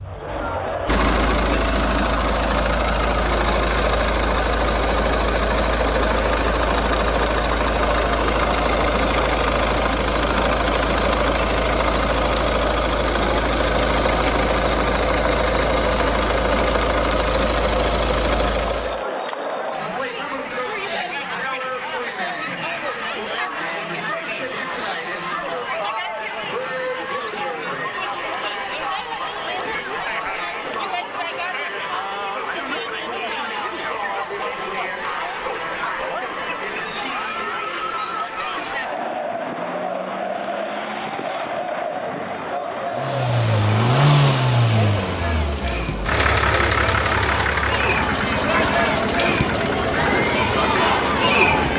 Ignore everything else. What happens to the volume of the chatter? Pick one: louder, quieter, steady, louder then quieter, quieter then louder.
steady.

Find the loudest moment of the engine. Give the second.
44 s.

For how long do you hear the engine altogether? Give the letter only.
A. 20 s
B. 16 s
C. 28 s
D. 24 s
C.